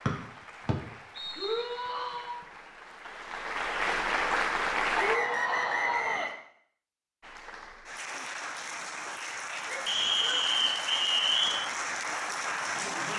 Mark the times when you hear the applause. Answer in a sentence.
You can hear the applause from 0.0 to 5.2 s and from 7.2 to 13.1 s.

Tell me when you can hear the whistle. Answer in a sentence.
You can hear the whistle from 0.1 to 1.6 s, from 4.9 to 6.3 s and from 9.8 to 11.7 s.